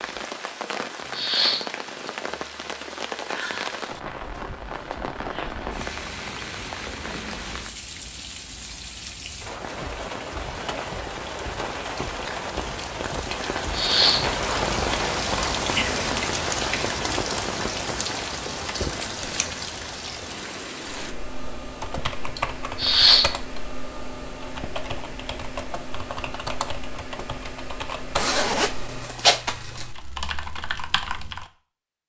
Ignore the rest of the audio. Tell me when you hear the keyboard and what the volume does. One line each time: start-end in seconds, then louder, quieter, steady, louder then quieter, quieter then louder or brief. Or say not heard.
20.9-31.5 steady.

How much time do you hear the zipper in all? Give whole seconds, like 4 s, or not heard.
2 s.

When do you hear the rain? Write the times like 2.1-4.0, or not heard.
0.0-21.1.